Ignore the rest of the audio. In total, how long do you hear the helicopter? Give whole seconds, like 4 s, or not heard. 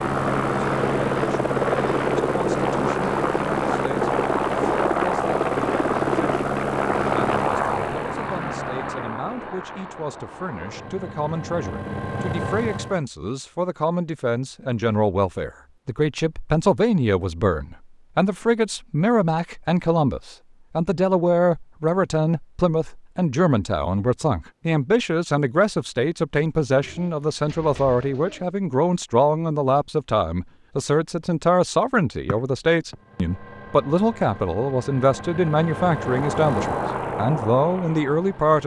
19 s.